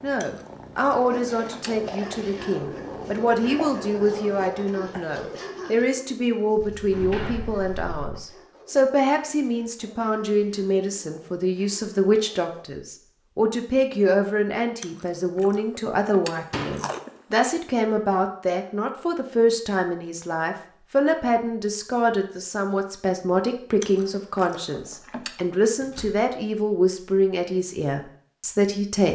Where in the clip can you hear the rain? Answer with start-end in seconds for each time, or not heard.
not heard.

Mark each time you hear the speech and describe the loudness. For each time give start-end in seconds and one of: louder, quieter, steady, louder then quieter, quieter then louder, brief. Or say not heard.
0.0-29.1 steady.